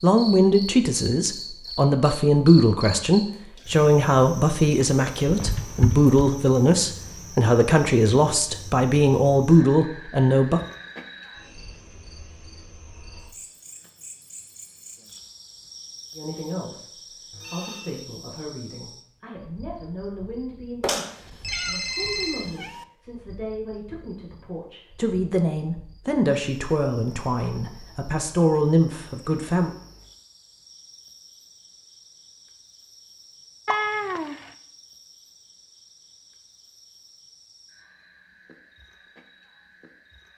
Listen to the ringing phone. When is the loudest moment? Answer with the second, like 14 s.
22 s.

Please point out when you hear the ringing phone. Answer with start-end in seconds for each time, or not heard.
17.3-18.1, 20.8-22.5.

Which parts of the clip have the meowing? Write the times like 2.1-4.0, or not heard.
5.2-6.2, 20.9-22.9, 33.6-34.5.